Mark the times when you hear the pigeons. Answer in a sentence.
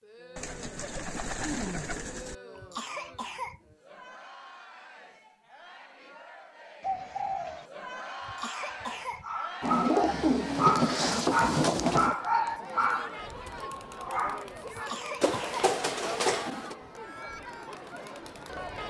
You can hear the pigeons from 0.3 to 2.4 s, from 6.8 to 7.7 s, from 9.6 to 12.2 s and from 15.2 to 16.8 s.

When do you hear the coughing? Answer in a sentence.
You can hear the coughing from 2.5 to 3.8 s, from 8.2 to 9.2 s and from 14.7 to 15.7 s.